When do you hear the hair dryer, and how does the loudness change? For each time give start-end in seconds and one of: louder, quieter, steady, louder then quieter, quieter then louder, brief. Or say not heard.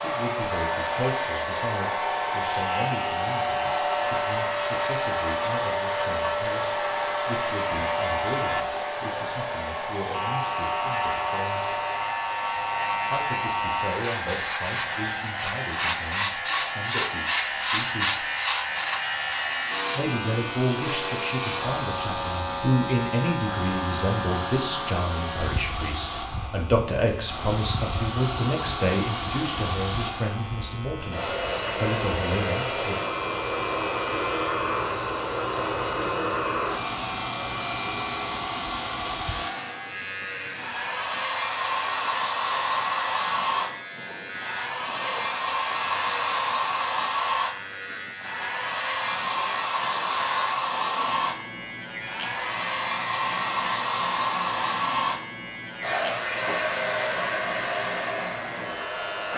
0.0-59.3 quieter then louder.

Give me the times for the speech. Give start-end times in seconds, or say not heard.
0.0-11.8, 13.1-18.2, 19.9-33.0.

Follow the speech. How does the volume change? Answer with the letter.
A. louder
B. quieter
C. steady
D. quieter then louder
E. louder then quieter
A.